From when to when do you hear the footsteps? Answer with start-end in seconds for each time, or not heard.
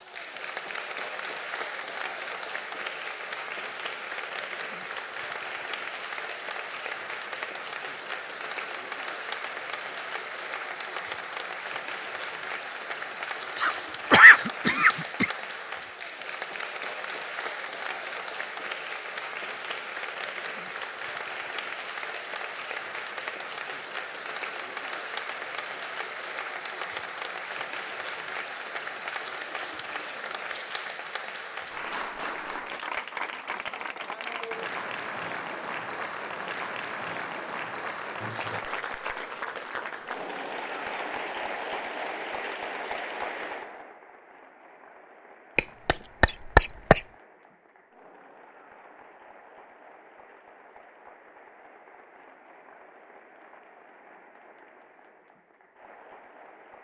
not heard.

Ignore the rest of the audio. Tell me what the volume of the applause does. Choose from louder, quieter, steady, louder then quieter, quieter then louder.
quieter.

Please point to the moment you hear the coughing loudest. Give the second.
14 s.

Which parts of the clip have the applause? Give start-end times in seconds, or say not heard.
0.0-56.7.